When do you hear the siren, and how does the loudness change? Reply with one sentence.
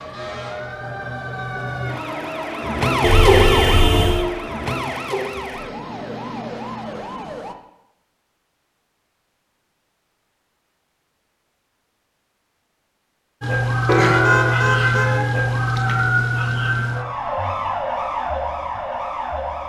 The siren can be heard from 0.0 to 7.5 s, getting louder then quieter; and from 13.4 to 19.6 s, getting quieter.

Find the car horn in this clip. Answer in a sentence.
You can hear the car horn from 3.0 to 4.2 s and from 13.8 to 15.2 s.